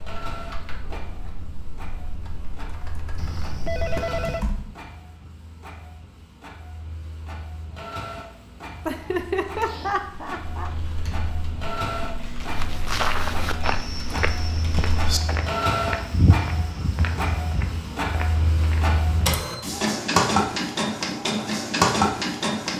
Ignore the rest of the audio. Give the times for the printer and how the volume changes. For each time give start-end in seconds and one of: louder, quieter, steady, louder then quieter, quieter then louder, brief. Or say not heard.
0.0-22.7 louder.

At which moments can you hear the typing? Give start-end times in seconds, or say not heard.
0.0-4.8, 9.5-15.2.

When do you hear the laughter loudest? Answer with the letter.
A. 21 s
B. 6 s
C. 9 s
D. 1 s
C.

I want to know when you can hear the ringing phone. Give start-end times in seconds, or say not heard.
3.1-4.5.